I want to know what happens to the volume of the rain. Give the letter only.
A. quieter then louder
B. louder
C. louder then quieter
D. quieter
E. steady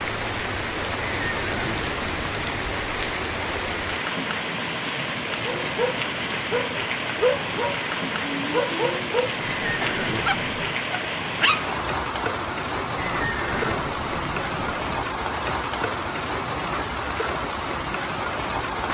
E.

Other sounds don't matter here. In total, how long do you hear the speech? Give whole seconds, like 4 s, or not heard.
not heard.